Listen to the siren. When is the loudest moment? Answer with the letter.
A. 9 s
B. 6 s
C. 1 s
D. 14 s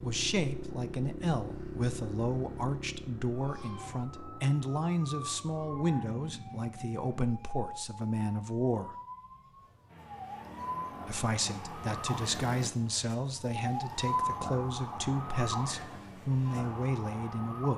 D.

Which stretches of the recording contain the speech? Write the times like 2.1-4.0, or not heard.
0.0-8.9, 11.1-17.7.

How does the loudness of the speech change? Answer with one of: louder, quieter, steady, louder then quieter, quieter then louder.
steady.